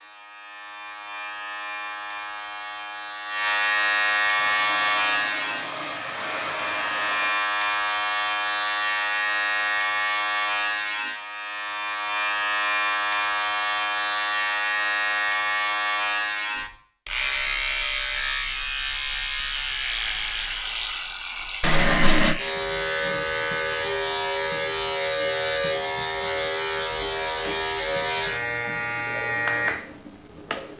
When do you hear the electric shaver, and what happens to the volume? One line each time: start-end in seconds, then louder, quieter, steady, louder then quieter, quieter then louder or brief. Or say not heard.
0.0-30.7 steady.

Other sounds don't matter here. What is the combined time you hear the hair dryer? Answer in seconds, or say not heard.
3 s.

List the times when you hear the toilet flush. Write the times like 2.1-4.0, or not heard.
21.6-22.4.